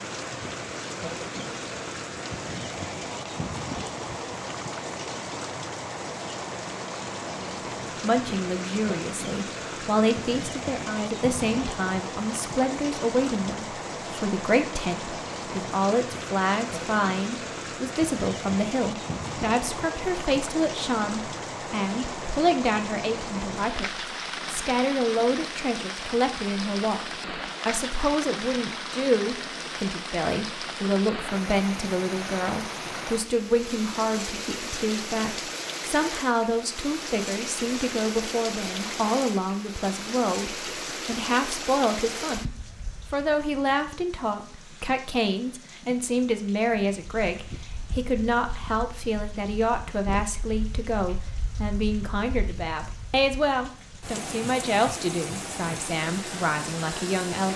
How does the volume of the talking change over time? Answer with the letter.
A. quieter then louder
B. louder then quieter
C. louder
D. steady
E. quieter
D.